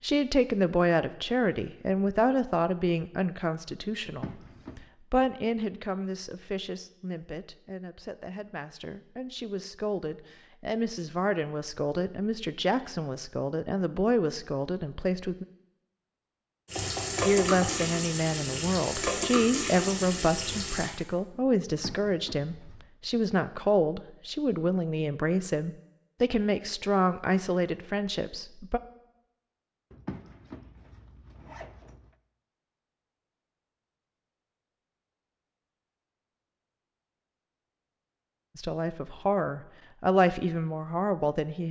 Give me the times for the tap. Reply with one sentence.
You can hear the tap from 16.6 to 20.9 s.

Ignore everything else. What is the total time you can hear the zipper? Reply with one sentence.
The zipper can be heard for 4 seconds in total.